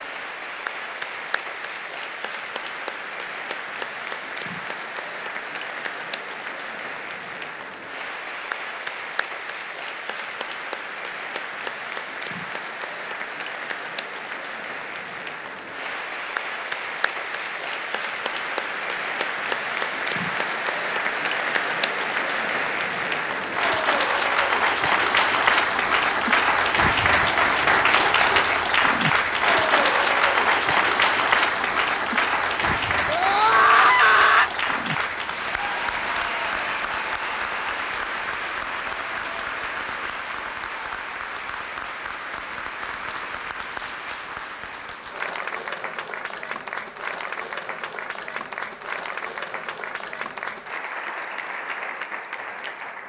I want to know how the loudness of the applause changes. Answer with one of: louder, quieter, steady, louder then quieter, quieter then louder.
louder then quieter.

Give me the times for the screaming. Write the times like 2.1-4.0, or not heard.
33.0-34.5.